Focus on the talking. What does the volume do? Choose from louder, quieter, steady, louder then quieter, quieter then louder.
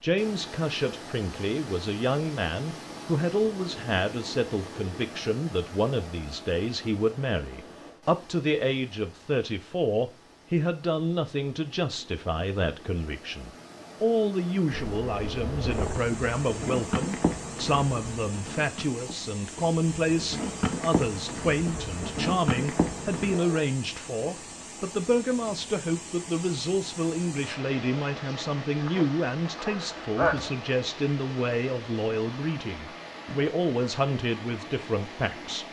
steady.